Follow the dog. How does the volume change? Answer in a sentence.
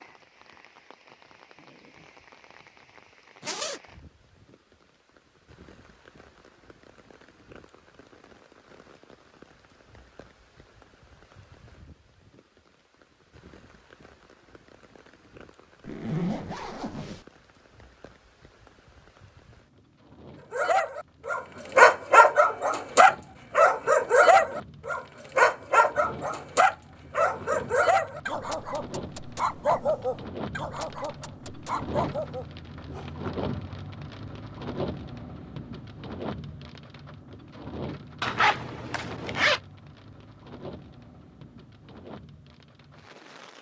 The loudness of the dog goes down.